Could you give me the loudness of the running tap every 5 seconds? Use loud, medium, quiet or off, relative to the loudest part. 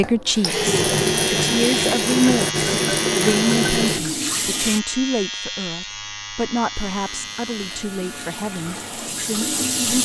loud, medium.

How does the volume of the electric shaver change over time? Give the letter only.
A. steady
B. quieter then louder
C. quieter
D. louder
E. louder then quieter
C.